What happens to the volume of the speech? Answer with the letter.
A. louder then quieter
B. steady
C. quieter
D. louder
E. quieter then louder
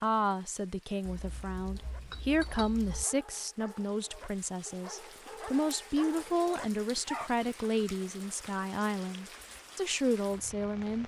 B.